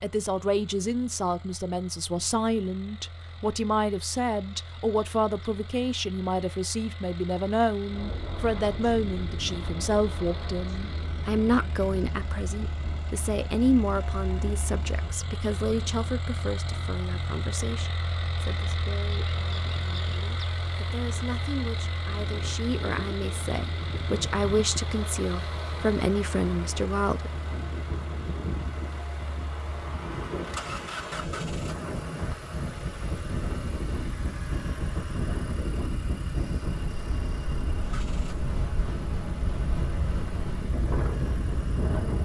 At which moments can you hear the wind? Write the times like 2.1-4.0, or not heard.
7.8-42.2.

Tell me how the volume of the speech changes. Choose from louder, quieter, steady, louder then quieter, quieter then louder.
quieter then louder.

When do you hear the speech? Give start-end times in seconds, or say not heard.
0.0-27.3.